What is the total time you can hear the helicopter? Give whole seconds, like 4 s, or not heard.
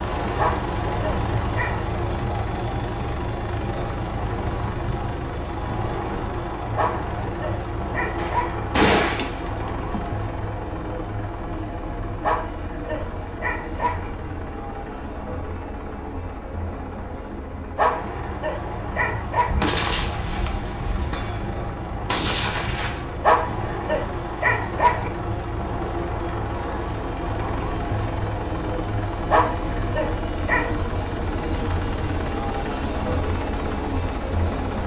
35 s.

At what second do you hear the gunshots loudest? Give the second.
9 s.